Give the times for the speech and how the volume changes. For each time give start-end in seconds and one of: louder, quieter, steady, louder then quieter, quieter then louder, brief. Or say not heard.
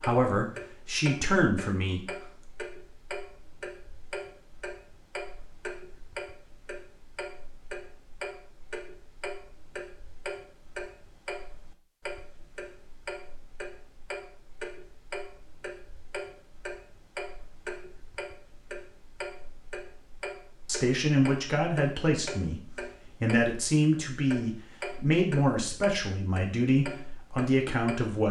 0.0-2.4 brief
20.6-28.2 steady.